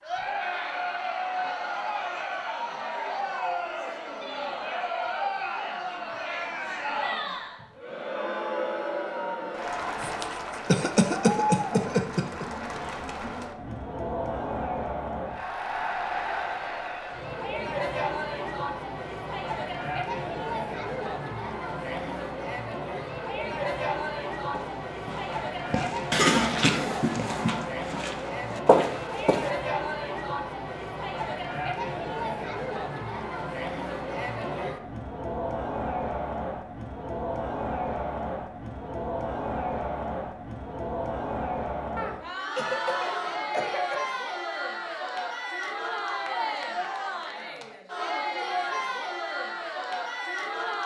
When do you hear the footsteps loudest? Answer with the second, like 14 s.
29 s.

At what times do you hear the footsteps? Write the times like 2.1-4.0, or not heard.
24.5-29.5.